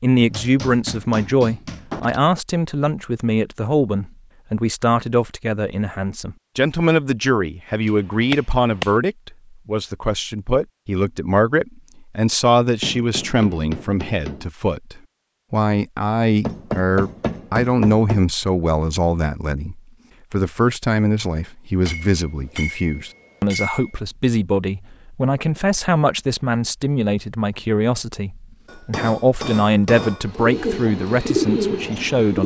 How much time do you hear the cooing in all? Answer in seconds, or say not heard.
2 s.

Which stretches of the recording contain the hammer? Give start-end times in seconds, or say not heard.
0.2-2.2, 7.8-8.9, 12.8-14.4, 16.4-18.2, 21.9-23.9, 28.6-30.4.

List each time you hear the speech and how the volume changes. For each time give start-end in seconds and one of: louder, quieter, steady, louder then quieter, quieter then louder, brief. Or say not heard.
0.0-32.4 steady.